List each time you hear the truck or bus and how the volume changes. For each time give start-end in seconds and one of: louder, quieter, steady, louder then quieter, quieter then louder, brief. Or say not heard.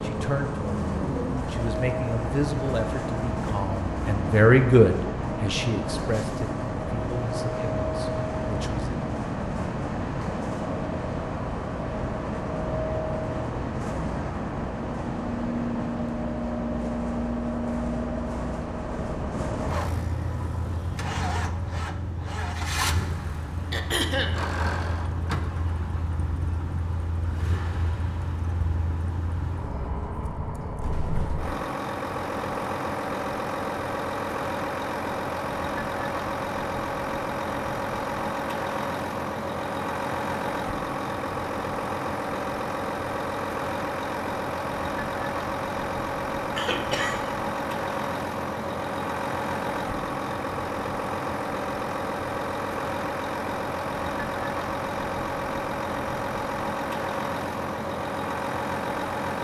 0.0-59.3 steady.